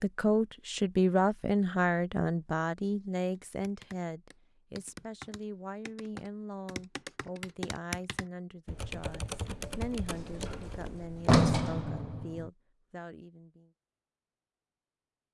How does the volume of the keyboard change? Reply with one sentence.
The loudness of the keyboard goes up.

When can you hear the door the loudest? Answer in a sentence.
The volume of the door peaks at 11 seconds.